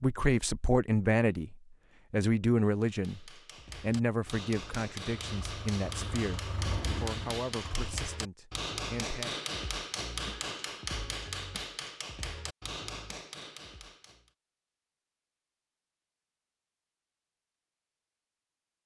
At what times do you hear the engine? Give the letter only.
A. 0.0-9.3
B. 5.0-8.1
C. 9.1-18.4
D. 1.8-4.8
B.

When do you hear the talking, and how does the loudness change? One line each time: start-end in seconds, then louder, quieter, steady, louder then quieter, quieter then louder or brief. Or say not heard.
0.0-9.3 quieter.